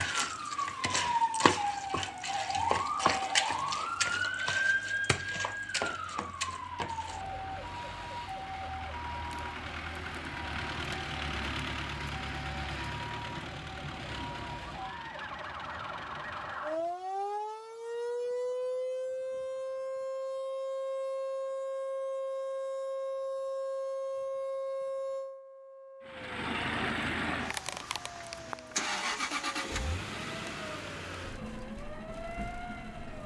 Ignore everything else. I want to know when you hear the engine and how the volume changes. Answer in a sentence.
The engine can be heard from 0.2 to 16.9 s, getting louder then quieter; and from 26.1 to 33.2 s, getting quieter.